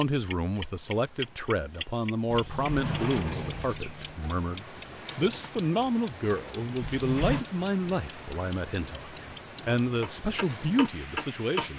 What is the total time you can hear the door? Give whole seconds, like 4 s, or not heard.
3 s.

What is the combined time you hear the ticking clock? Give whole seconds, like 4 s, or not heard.
12 s.